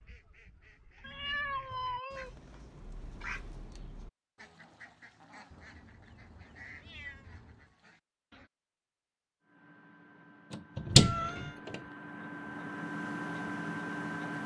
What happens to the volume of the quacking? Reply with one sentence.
The loudness of the quacking goes up, then down.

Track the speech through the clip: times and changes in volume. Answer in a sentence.
The speech can't be heard in this clip.